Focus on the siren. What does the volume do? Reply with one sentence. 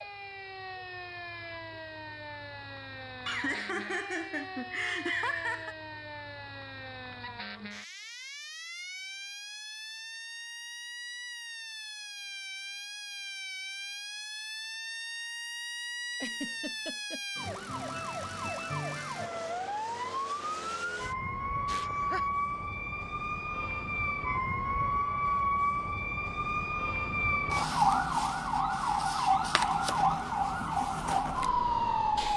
The volume of the siren goes up.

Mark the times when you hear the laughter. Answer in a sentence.
The laughter can be heard from 3.2 to 5.8 s, from 16.1 to 17.2 s and from 21.6 to 22.2 s.